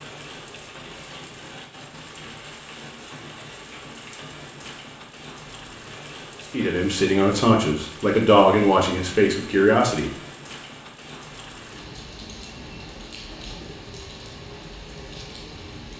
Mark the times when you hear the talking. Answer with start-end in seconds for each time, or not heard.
6.5-10.1.